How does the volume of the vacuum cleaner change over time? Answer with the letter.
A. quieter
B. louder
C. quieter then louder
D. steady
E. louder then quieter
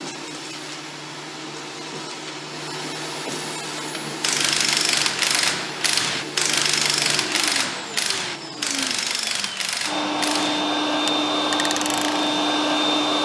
B.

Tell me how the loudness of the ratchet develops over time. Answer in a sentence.
The volume of the ratchet goes down.